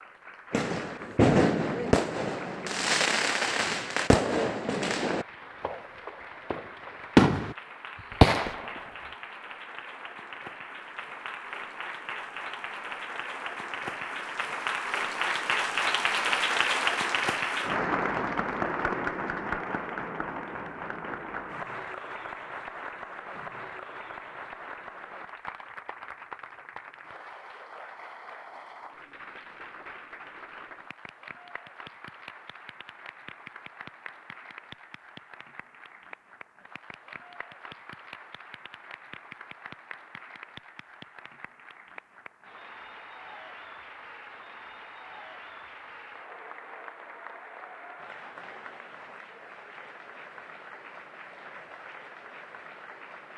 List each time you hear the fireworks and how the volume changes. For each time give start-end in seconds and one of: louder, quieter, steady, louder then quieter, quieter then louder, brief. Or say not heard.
0.5-7.5 quieter
8.2-8.9 brief.